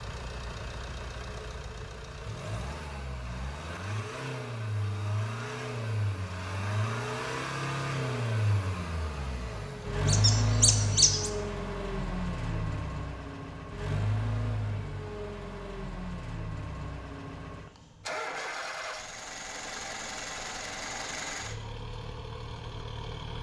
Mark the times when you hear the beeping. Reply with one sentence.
The beeping can't be heard in this clip.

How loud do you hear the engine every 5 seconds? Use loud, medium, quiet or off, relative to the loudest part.
medium, loud, loud, medium, medium.